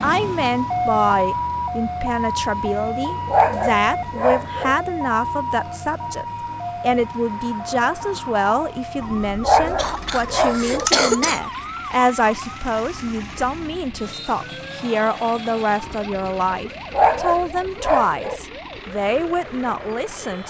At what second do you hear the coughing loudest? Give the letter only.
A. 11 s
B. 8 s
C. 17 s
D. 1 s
A.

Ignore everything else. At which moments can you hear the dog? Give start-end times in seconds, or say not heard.
3.2-4.8, 9.4-10.9, 16.9-18.4.